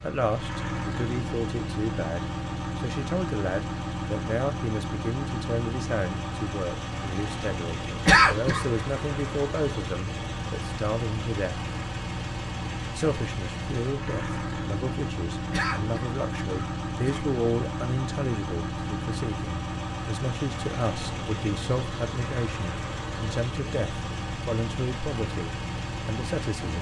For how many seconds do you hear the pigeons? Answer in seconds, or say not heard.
not heard.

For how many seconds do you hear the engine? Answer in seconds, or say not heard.
27 s.